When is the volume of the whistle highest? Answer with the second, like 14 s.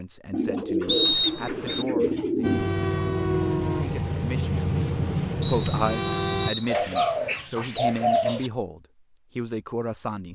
1 s.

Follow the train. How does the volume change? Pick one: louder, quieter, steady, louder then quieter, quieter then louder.
steady.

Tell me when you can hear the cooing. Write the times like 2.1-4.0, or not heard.
0.3-2.7, 6.7-8.5.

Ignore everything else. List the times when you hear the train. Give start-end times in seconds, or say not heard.
2.4-6.5.